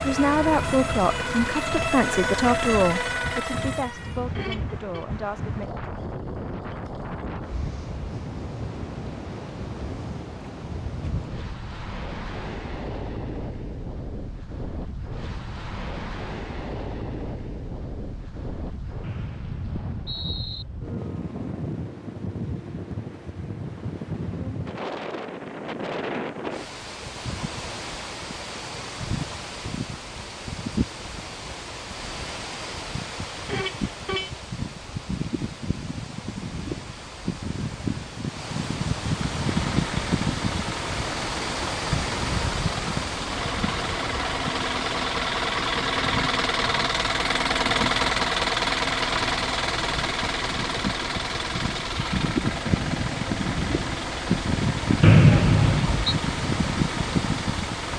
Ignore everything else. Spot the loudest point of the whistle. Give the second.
55 s.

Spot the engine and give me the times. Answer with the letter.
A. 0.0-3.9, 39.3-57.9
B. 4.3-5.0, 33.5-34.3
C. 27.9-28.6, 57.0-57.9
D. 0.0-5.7
A.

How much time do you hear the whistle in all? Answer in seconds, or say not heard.
3 s.